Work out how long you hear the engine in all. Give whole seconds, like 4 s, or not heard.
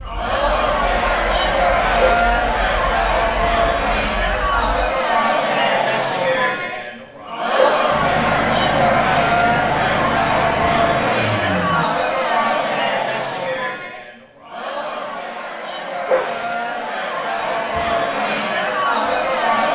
9 s.